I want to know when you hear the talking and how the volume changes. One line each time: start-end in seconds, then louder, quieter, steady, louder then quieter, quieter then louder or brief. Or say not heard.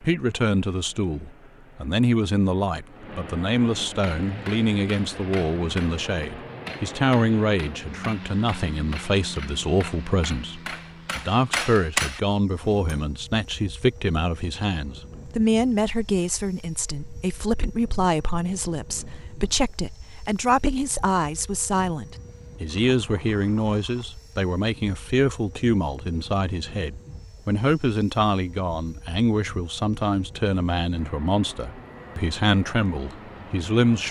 0.0-34.0 steady.